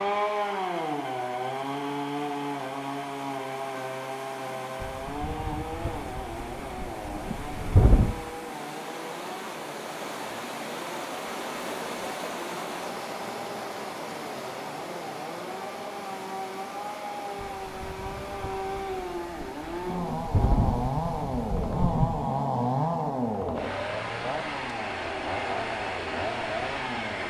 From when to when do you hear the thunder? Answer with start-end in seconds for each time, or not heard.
4.8-8.2, 17.4-22.3.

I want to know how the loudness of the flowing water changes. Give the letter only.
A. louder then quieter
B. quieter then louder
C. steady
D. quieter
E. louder
A.